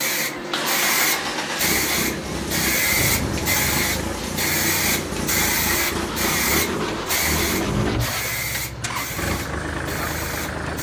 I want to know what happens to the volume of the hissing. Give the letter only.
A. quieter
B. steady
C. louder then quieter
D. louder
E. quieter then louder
A.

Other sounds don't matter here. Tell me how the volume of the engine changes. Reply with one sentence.
The volume of the engine stays about the same.